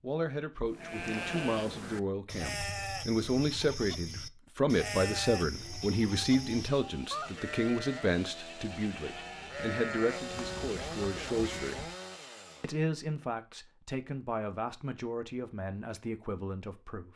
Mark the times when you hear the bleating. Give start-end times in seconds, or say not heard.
0.7-11.9.